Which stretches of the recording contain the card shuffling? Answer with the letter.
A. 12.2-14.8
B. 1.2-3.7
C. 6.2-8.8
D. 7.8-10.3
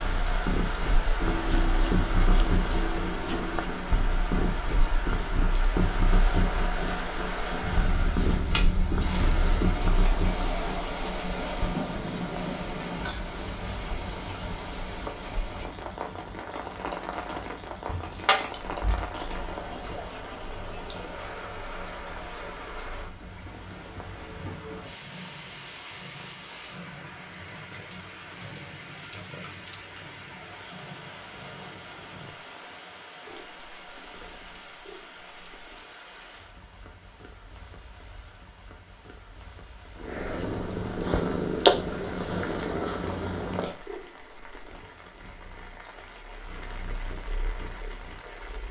B.